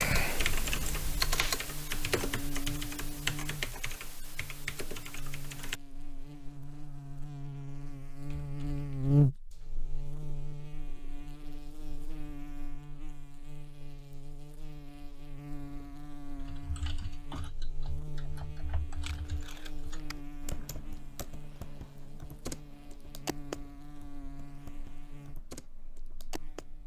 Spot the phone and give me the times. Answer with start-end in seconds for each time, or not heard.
not heard.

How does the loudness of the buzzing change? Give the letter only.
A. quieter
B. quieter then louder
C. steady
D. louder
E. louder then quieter
E.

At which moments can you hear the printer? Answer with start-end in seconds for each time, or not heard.
not heard.